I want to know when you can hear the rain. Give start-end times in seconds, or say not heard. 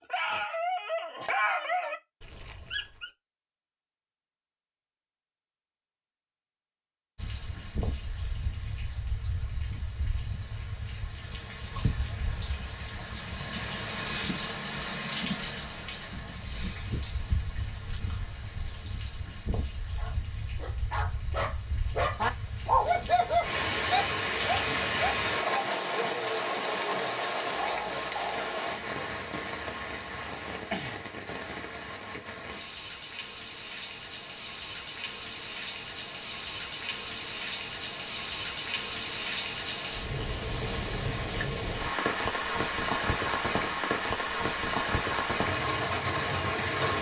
7.2-46.9.